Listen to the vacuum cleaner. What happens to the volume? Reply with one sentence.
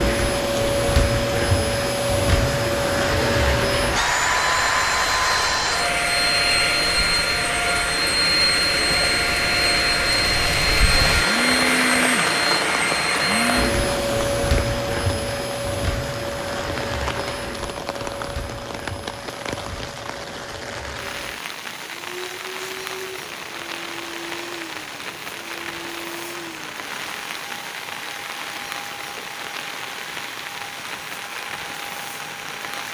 The volume of the vacuum cleaner goes down.